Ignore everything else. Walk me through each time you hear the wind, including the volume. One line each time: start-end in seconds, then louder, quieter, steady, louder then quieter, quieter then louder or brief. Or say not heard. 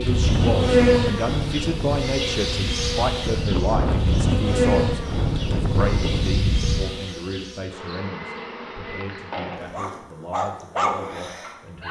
0.0-6.9 quieter then louder.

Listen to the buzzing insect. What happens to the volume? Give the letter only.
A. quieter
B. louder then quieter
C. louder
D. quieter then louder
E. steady
A.